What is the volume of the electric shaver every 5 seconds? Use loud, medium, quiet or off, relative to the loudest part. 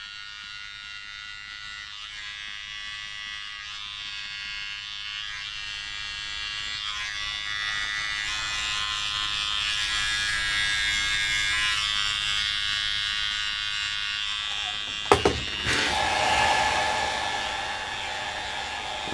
medium, loud, loud, medium.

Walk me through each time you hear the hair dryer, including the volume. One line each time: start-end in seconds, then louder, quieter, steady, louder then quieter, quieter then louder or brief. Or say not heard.
14.4-19.0 quieter.